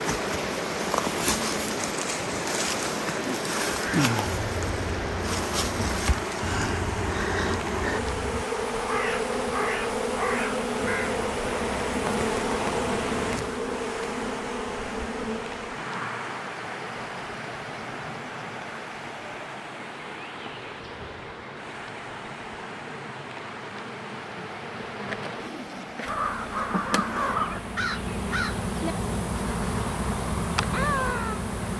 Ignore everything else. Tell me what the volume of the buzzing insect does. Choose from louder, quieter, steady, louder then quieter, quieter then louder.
quieter then louder.